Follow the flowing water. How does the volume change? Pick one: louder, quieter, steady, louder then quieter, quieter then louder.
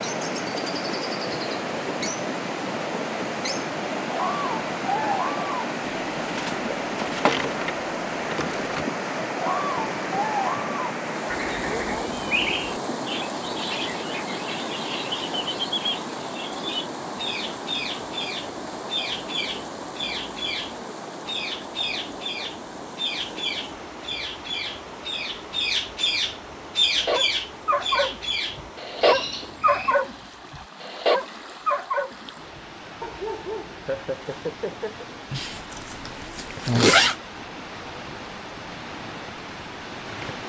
quieter.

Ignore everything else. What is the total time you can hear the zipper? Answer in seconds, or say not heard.
2 s.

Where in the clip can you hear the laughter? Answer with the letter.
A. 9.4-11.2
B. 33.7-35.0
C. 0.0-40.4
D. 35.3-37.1
B.